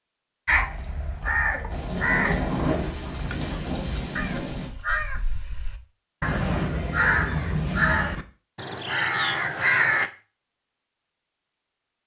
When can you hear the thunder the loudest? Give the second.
3 s.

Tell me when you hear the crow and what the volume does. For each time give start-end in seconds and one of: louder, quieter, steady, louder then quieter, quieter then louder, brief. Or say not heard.
0.5-10.1 quieter then louder.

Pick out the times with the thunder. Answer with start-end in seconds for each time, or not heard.
1.7-4.7.